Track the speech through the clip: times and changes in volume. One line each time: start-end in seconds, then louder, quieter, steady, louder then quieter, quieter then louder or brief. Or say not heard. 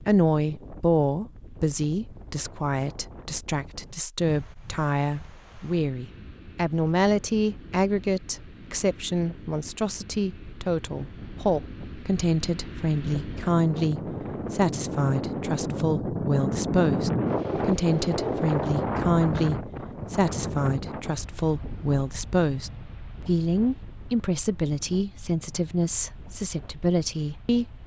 0.0-27.8 steady.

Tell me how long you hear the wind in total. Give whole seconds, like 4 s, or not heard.
28 s.